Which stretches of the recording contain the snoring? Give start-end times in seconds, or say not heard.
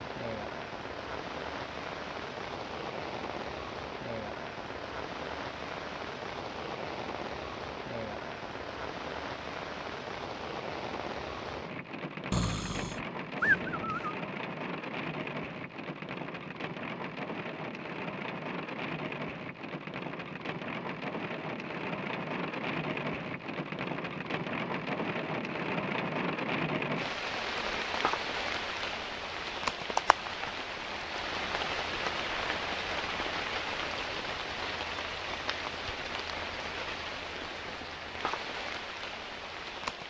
12.3-14.2.